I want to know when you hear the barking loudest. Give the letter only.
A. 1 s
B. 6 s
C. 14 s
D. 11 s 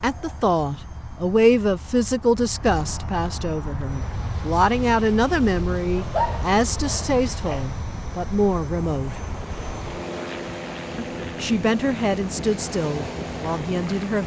B.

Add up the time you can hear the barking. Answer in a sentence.
The barking can be heard for 2 seconds in total.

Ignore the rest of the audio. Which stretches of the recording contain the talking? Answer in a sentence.
The talking can be heard from 0.0 to 9.2 s and from 10.9 to 14.2 s.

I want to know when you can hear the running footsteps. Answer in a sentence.
The running footsteps can't be heard in this clip.